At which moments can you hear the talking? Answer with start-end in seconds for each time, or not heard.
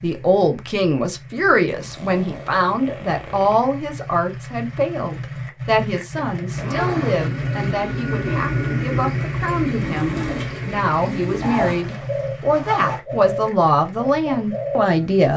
0.0-15.3.